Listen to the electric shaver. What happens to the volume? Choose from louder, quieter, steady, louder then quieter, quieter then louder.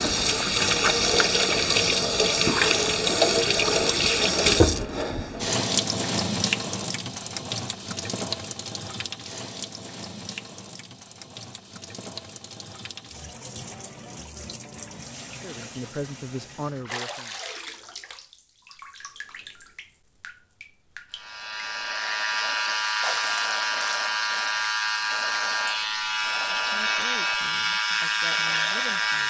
steady.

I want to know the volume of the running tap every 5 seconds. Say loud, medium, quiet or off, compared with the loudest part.
loud, medium, quiet, quiet, quiet, quiet.